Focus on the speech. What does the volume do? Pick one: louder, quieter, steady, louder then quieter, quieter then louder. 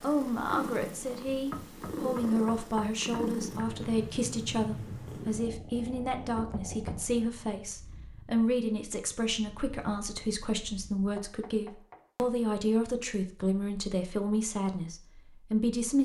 steady.